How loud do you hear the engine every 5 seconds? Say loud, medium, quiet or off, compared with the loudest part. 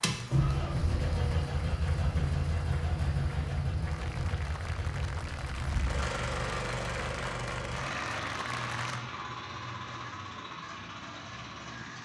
loud, loud, medium.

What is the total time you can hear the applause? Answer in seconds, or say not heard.
9 s.